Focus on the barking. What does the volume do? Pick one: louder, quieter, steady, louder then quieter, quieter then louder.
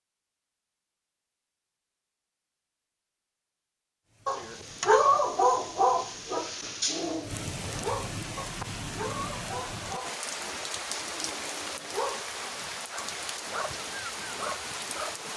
quieter.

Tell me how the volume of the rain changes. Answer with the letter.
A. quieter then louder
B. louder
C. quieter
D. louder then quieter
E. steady
B.